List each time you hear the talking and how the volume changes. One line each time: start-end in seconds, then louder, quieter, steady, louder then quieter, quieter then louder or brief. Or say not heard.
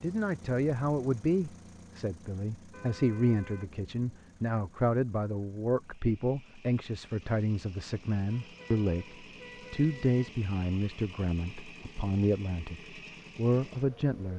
0.0-14.3 steady.